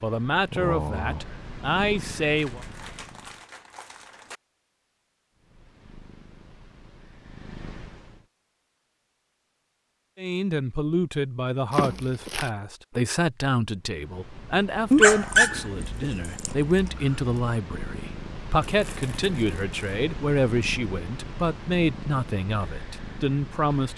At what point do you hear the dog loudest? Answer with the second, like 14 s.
15 s.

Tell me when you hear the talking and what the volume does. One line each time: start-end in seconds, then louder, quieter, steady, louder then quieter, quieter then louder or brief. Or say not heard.
0.0-2.6 brief
10.2-23.9 steady.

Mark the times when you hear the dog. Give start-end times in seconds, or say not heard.
14.9-17.1.